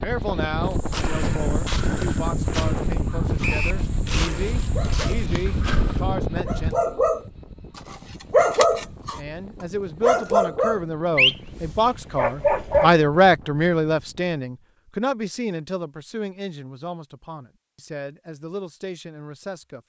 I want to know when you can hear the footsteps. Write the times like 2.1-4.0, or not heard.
0.7-6.0.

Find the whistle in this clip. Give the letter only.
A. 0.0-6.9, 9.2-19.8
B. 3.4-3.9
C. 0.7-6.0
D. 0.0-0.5
B.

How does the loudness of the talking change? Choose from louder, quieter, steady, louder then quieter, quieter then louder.
louder then quieter.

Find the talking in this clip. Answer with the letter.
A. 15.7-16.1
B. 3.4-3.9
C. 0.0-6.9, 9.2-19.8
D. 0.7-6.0
C.